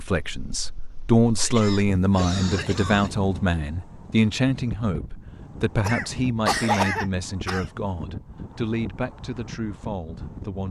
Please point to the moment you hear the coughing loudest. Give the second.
7 s.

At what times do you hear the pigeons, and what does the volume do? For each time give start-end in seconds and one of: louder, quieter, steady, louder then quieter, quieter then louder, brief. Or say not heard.
not heard.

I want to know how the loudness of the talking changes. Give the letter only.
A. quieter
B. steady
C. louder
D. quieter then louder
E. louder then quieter
A.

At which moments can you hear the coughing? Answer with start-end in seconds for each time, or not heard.
1.4-3.1, 5.8-7.7.